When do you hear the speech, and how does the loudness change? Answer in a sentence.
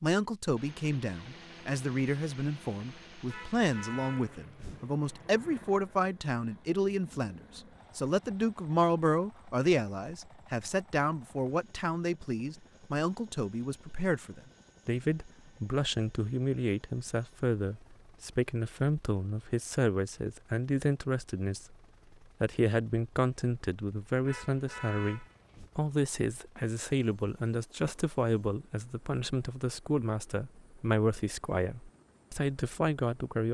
The speech can be heard from 0.0 to 21.8 s, at a steady volume; and from 22.4 to 33.4 s, at a steady volume.